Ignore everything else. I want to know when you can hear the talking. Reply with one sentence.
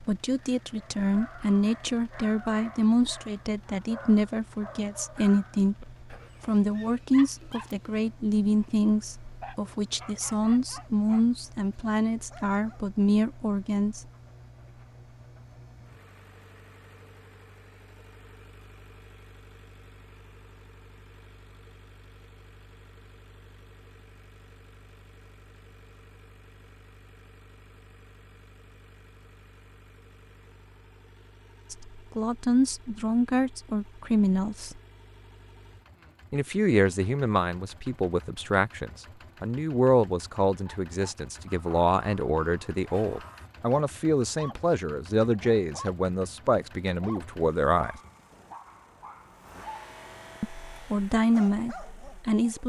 The talking can be heard from 0.0 to 14.0 s, from 31.7 to 34.8 s, from 36.3 to 48.0 s and from 50.4 to 52.6 s.